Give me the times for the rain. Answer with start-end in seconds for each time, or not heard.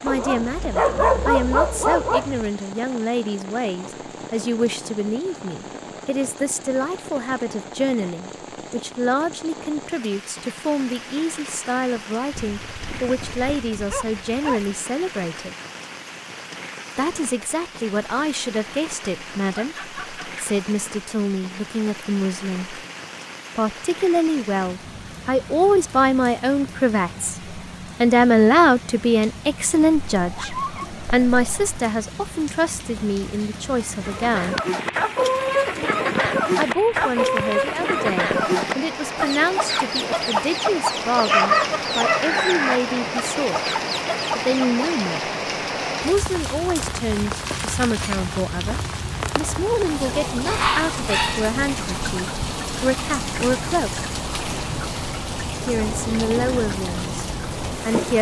0.0-58.1.